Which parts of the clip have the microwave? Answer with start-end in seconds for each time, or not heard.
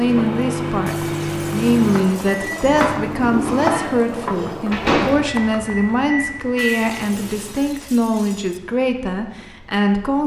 0.0-7.7.